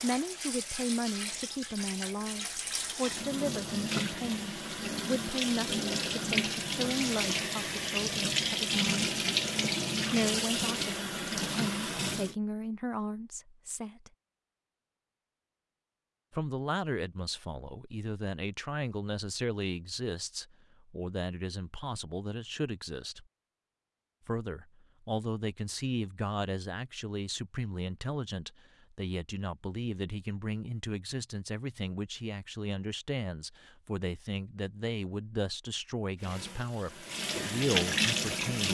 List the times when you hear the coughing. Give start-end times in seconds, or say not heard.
not heard.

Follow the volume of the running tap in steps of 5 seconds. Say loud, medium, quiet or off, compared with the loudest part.
medium, loud, loud, off, off, off, off, loud.